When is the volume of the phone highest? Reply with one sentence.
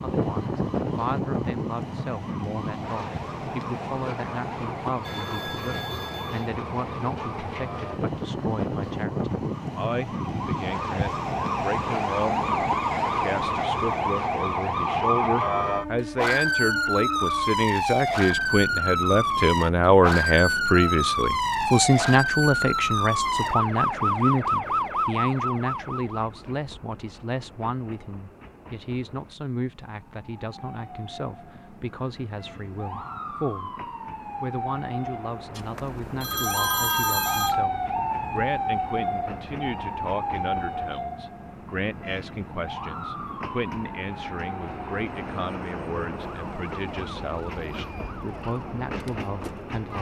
The loudest moment of the phone is at 37 seconds.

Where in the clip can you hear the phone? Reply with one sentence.
The phone can be heard from 5.0 to 6.5 s and from 35.5 to 37.6 s.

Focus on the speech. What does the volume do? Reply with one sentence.
The loudness of the speech goes up, then down.